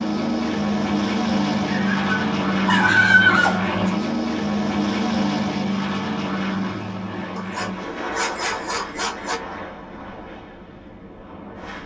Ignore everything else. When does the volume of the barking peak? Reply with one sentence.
The volume of the barking peaks at 3 seconds.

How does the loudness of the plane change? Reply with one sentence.
The loudness of the plane goes down.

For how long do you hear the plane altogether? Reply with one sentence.
You can hear the plane for 12 seconds altogether.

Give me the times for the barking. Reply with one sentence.
The barking can be heard from 1.6 to 4.1 s and from 7.3 to 9.3 s.